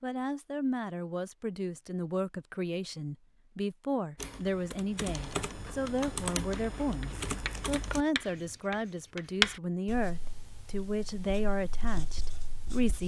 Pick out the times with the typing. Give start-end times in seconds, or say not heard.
4.2-8.6.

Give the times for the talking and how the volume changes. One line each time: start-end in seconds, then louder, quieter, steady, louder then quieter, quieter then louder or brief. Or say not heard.
0.0-13.0 steady.